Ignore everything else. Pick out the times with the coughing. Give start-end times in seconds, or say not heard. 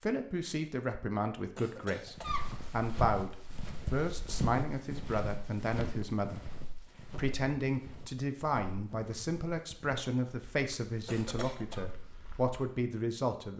1.6-2.5, 11.1-11.8.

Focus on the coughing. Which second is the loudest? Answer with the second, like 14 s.
2 s.